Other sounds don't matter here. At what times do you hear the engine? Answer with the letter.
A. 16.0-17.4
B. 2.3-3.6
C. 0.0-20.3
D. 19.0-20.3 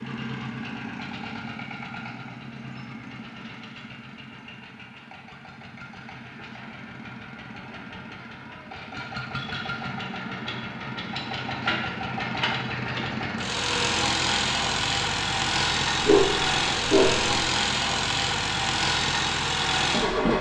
C.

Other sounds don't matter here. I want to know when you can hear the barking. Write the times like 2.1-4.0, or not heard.
16.0-17.4.